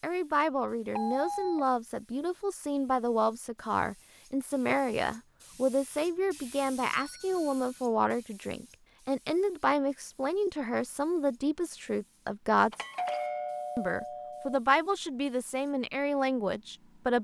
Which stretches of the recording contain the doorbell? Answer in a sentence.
The doorbell can be heard from 0.9 to 1.6 s, from 6.8 to 7.7 s and from 12.7 to 14.6 s.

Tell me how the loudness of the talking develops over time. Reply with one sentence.
The loudness of the talking stays about the same.